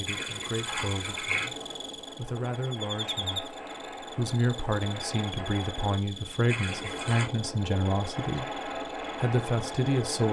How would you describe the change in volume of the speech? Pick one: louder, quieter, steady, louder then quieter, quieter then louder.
louder.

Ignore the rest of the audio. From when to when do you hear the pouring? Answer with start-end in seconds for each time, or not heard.
0.1-1.4, 6.5-7.2.